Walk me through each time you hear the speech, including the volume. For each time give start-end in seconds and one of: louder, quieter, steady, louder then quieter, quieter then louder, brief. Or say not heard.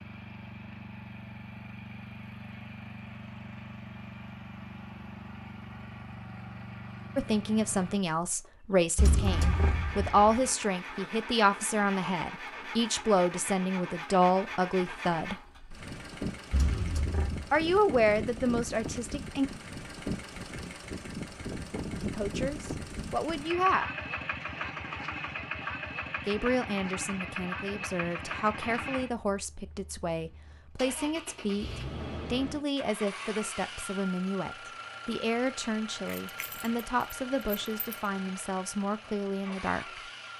7.2-15.3 steady
17.5-19.5 brief
22.0-23.9 brief
26.2-40.0 steady.